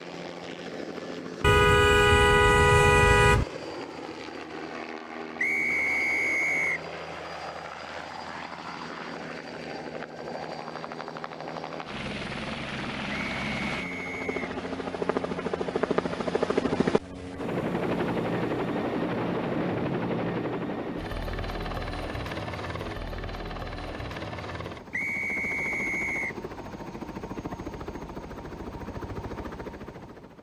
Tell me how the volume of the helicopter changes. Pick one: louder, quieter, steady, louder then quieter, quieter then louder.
louder then quieter.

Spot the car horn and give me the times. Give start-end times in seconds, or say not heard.
1.4-3.5.